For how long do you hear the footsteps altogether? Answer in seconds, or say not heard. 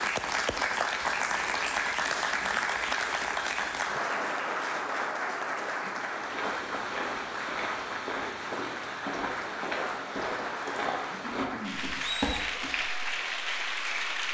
7 s.